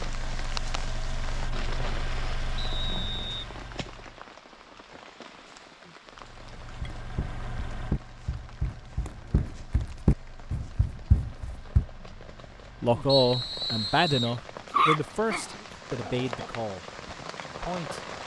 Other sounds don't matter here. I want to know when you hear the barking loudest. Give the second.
15 s.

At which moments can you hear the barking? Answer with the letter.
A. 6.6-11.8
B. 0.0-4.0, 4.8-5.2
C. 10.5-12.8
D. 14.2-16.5
D.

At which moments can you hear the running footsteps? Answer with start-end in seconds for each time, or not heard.
6.6-11.8.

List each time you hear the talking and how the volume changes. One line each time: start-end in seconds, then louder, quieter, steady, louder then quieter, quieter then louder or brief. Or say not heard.
12.8-16.9 quieter
17.6-18.1 brief.